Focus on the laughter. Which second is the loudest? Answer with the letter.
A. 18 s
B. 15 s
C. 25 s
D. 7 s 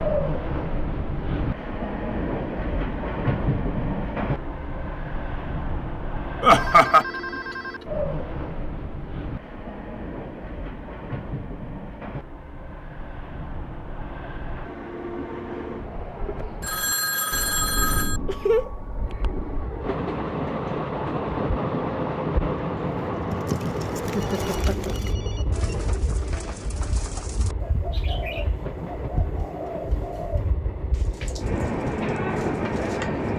D.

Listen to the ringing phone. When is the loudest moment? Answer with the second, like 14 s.
18 s.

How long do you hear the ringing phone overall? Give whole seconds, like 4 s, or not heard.
5 s.